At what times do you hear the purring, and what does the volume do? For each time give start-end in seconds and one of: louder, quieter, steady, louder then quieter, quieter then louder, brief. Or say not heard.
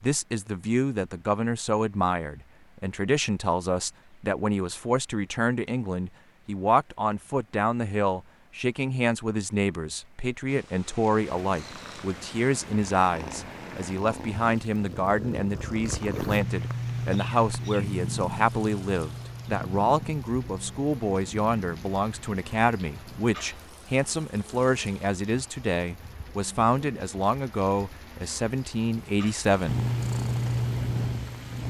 10.4-23.2 louder then quieter
29.6-31.6 brief.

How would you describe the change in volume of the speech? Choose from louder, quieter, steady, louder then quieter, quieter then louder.
steady.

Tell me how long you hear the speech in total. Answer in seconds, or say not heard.
30 s.